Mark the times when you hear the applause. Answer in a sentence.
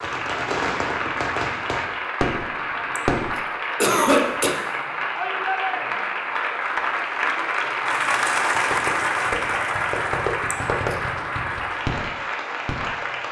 The applause can be heard from 0.0 to 13.2 s.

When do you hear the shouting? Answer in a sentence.
The shouting can be heard from 5.2 to 6.2 s.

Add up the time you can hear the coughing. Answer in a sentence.
You can hear the coughing for 2 seconds altogether.